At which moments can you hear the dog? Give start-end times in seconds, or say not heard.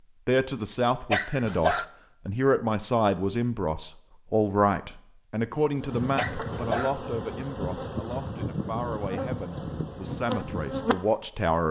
1.1-1.9, 6.2-7.0.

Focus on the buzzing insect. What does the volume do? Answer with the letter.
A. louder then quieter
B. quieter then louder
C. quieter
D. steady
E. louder
D.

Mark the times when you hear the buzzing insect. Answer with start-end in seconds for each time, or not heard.
5.8-11.2.